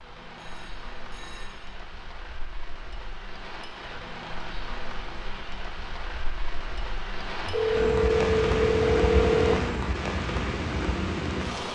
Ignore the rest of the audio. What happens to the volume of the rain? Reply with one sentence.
The volume of the rain goes up.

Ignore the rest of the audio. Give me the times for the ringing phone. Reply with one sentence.
You can hear the ringing phone from 0.3 to 1.8 s and from 7.5 to 9.8 s.